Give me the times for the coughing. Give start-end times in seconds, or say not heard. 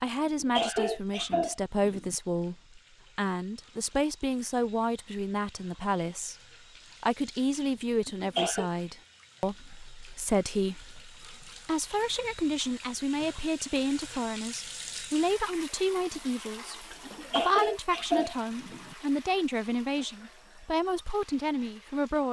0.2-2.1, 8.1-8.7, 17.1-18.9.